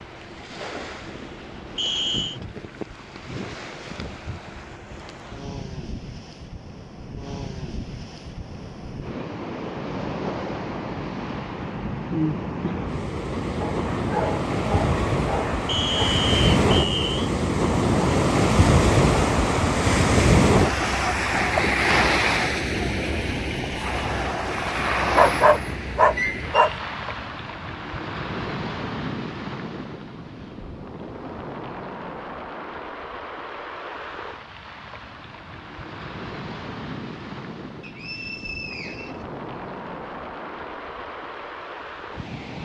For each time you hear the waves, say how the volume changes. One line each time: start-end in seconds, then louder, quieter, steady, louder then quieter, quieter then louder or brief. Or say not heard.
0.0-42.5 louder then quieter.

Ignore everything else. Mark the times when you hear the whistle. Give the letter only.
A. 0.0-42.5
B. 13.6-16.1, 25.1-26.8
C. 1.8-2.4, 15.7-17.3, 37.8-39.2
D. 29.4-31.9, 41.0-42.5
C.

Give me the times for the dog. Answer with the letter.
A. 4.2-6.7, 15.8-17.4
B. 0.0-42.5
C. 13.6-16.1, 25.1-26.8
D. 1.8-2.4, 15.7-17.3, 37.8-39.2
C.